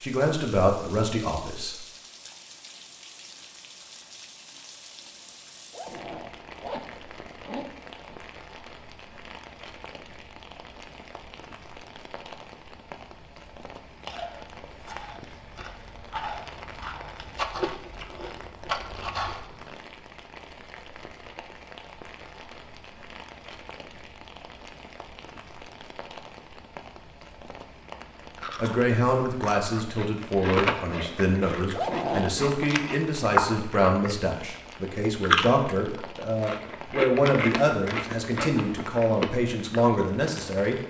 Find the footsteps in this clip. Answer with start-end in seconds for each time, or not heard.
not heard.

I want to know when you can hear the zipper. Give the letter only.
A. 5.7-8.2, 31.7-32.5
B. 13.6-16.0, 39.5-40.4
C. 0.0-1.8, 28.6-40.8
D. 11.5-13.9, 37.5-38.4
A.